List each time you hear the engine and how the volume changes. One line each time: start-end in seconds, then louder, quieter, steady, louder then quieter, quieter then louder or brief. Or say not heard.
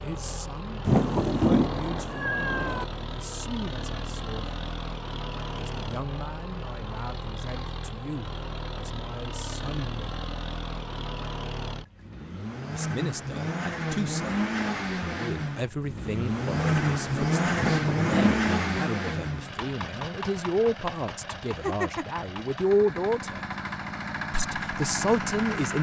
0.0-25.7 louder then quieter.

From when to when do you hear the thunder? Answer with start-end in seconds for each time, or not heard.
0.8-1.7, 17.6-18.4.